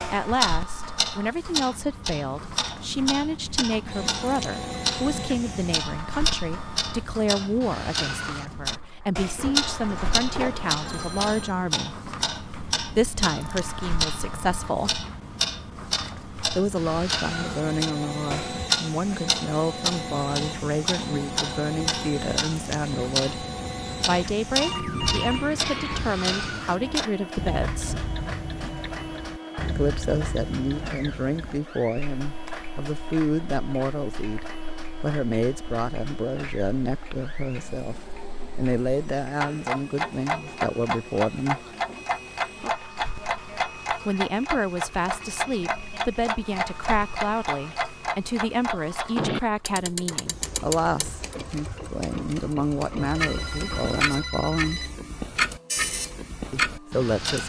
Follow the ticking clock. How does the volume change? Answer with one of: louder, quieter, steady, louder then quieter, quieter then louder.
steady.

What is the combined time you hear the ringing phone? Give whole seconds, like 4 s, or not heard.
6 s.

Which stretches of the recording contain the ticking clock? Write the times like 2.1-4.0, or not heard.
0.0-57.4.